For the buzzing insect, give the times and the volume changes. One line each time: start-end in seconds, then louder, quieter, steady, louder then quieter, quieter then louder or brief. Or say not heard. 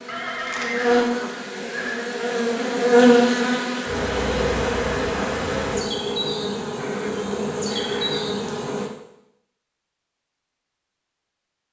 0.0-8.9 louder then quieter.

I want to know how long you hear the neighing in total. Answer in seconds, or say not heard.
4 s.